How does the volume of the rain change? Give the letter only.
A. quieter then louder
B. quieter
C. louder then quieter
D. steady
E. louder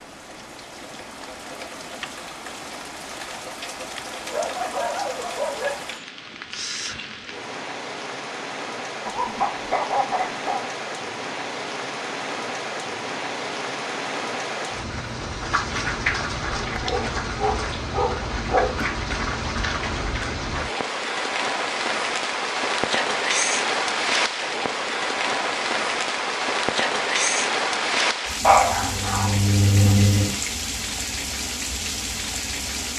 E.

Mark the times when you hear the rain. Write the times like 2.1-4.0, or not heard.
0.0-32.9.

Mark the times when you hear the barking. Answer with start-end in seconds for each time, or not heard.
4.3-6.0, 9.1-10.6, 16.6-18.9, 28.4-30.4.